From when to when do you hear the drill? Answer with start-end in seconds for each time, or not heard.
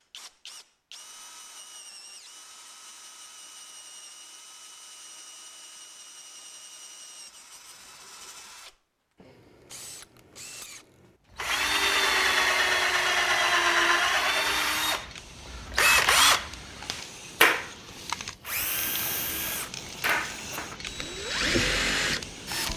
0.0-22.7.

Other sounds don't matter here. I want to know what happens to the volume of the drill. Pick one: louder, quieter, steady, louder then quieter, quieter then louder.
louder then quieter.